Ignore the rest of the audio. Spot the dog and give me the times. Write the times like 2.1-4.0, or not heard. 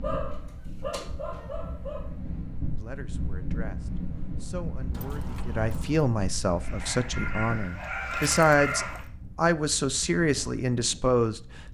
0.0-2.1, 6.5-9.0.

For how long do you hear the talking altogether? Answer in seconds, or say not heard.
9 s.